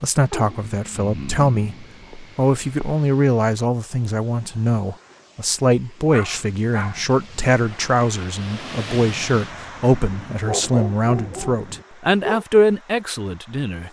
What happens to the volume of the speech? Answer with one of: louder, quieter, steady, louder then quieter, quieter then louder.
steady.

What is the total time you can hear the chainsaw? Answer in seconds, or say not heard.
not heard.